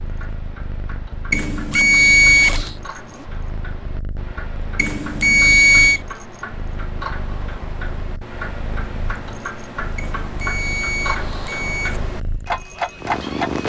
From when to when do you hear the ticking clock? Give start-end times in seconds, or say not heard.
0.0-13.6.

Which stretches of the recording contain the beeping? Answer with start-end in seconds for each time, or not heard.
1.3-2.8, 4.8-6.0, 9.9-12.0.